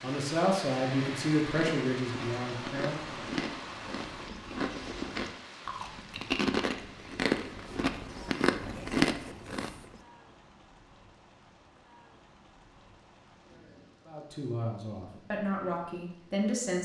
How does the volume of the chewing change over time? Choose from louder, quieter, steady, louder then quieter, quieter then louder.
louder.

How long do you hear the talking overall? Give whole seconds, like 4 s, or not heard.
6 s.